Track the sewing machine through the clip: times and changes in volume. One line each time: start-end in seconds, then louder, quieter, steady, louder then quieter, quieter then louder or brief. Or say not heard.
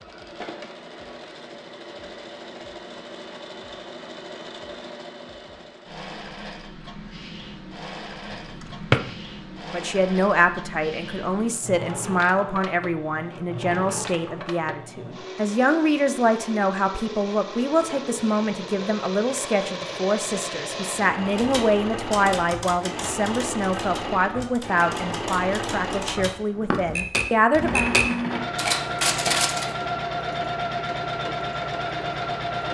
0.0-32.6 louder.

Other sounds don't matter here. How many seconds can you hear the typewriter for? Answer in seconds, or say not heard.
8 s.